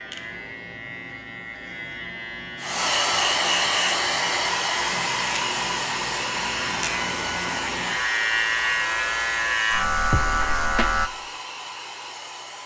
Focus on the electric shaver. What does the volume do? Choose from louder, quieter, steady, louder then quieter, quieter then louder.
louder.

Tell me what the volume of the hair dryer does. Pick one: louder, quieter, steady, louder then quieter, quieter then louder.
quieter.